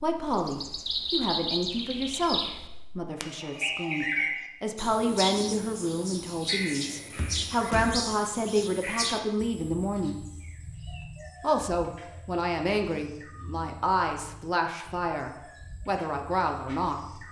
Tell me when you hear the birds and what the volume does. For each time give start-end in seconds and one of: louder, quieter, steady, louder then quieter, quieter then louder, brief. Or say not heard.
0.1-17.2 quieter.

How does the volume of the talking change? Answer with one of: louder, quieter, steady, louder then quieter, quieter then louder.
steady.